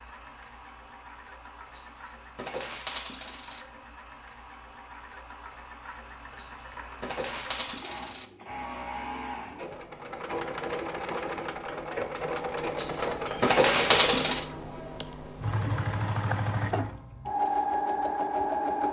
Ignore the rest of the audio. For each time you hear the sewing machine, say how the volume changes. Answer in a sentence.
You can hear the sewing machine from 0.0 to 18.8 s, getting louder.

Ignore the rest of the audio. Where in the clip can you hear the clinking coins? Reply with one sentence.
The clinking coins can be heard from 1.7 to 3.6 s, from 6.3 to 8.2 s and from 12.8 to 14.4 s.